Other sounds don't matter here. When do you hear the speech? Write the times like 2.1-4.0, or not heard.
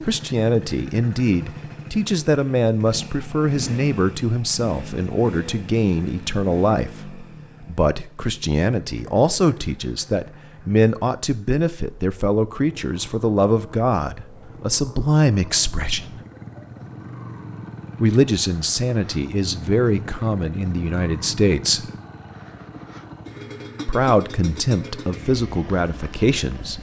0.0-16.1, 18.0-21.9, 23.9-26.7.